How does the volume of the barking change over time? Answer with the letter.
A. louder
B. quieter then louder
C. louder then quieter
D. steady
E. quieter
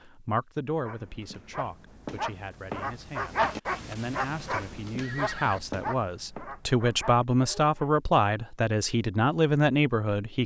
C.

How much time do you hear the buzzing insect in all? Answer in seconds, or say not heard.
not heard.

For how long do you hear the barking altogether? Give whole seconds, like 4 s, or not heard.
7 s.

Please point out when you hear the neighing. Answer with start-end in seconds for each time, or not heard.
5.0-5.6.